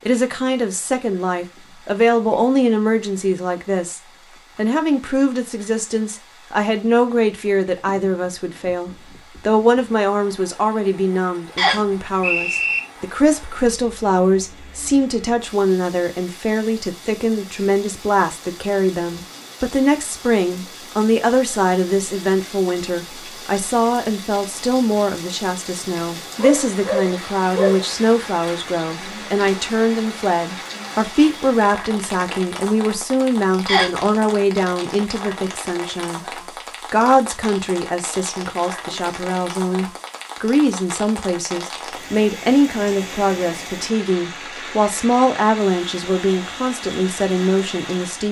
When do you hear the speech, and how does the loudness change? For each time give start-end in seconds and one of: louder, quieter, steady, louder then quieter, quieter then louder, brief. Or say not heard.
0.1-48.2 steady.